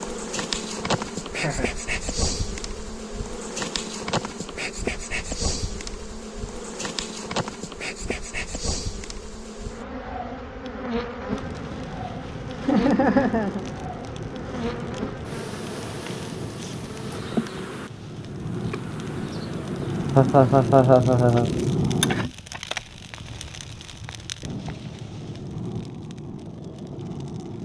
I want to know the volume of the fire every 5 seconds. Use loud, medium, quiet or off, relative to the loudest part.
off, off, medium, medium, loud, medium.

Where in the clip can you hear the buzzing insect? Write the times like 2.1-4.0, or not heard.
0.0-20.9.